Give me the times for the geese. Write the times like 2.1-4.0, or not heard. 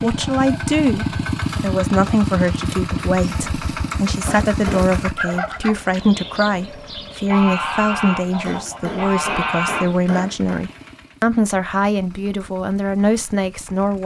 5.0-9.9.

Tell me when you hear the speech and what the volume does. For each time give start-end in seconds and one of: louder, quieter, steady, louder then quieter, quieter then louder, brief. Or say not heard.
0.0-14.0 steady.